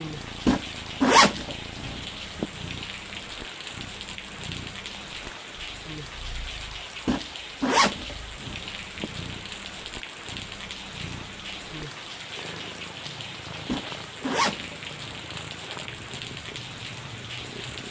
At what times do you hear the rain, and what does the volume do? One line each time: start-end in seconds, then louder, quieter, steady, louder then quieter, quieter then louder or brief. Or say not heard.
0.0-17.8 steady.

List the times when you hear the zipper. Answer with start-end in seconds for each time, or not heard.
0.5-2.5, 7.0-9.1, 13.7-15.2.